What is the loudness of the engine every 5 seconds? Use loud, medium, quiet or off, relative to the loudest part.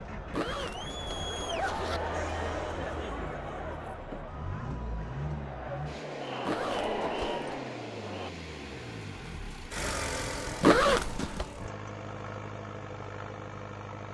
medium, loud, loud.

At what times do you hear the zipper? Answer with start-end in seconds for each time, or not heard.
0.3-2.0, 6.5-7.5, 10.6-11.4.